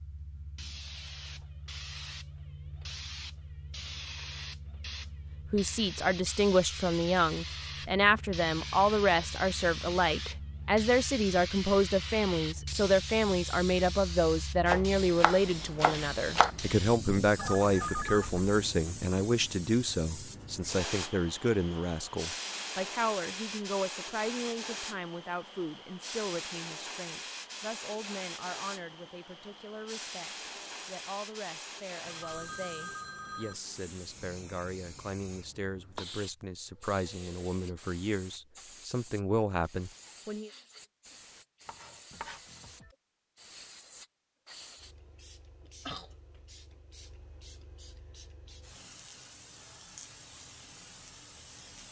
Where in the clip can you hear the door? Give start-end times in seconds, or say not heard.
not heard.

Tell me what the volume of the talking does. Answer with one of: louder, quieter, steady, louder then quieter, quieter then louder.
quieter then louder.